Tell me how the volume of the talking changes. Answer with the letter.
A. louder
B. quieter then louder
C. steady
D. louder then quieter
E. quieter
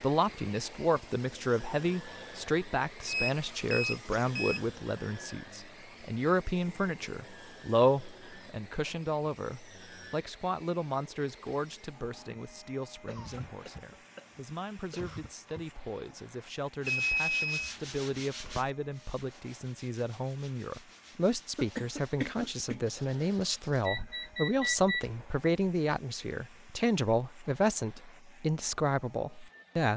B.